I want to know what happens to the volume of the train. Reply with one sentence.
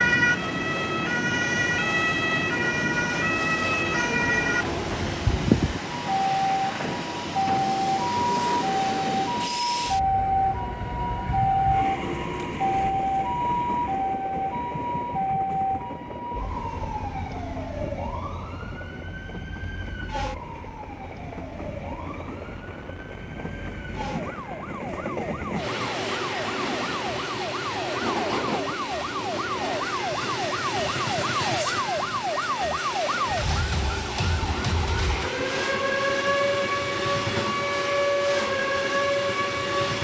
The loudness of the train goes down, then up.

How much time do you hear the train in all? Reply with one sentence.
You can hear the train for 40 seconds altogether.